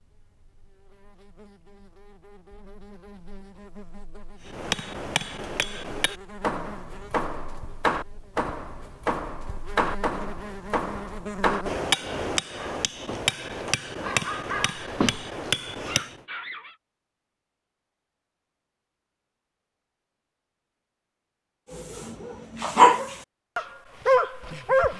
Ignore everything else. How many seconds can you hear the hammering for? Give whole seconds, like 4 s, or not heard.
12 s.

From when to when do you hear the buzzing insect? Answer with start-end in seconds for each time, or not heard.
0.0-11.8.